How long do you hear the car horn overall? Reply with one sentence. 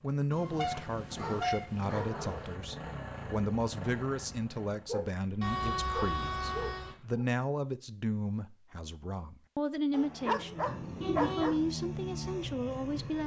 The car horn can be heard for 4 seconds in total.